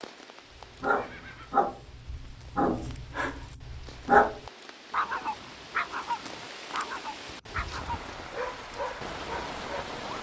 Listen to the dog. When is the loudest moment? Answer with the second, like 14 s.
4 s.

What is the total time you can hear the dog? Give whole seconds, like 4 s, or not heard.
9 s.